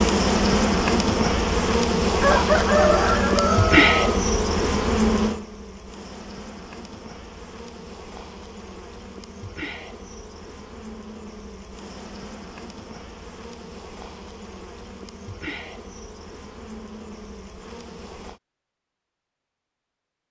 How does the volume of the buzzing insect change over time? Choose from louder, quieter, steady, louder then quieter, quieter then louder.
quieter.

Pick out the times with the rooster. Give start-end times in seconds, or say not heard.
2.2-4.2.